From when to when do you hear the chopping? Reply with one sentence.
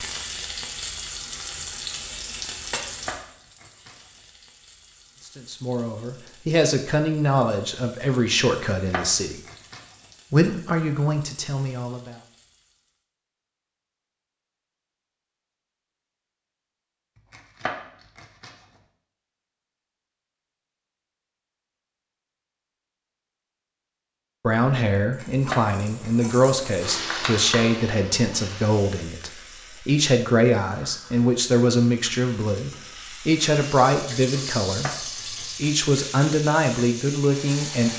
The chopping can be heard from 3.0 to 4.0 s, from 8.8 to 9.8 s, from 17.3 to 18.6 s, from 25.1 to 26.3 s and from 34.8 to 35.8 s.